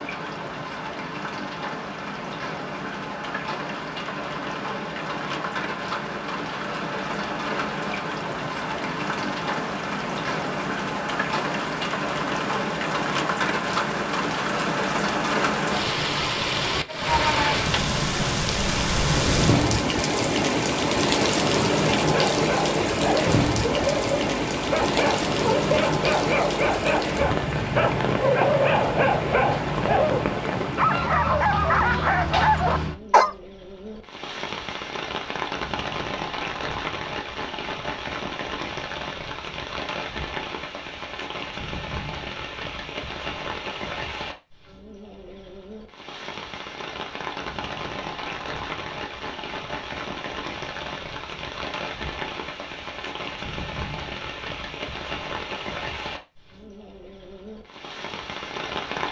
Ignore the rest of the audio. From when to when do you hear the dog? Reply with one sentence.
The dog can be heard from 21.9 to 33.4 s.